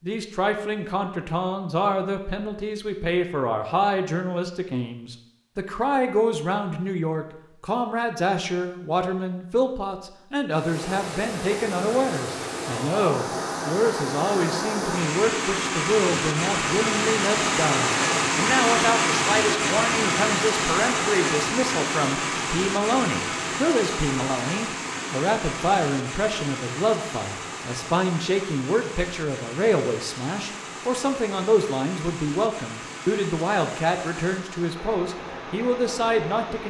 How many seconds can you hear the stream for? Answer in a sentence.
The stream can be heard for 26 seconds in total.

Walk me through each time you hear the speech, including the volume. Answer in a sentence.
The speech can be heard from 0.0 to 36.6 s, at a steady volume.